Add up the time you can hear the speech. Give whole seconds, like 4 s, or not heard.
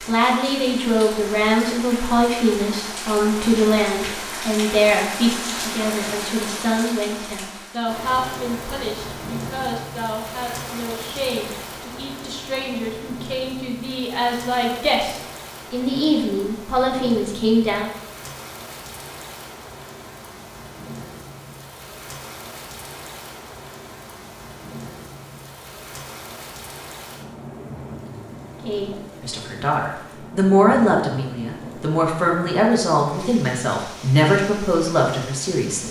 25 s.